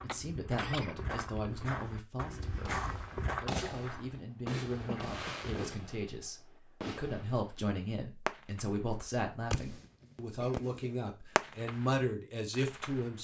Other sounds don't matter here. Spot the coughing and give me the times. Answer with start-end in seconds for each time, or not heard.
0.1-1.5, 4.8-5.5, 10.4-11.2.